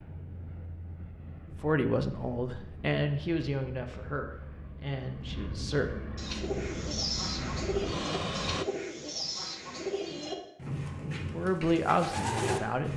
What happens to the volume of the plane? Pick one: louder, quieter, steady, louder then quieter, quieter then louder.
louder.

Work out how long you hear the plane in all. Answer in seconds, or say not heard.
9 s.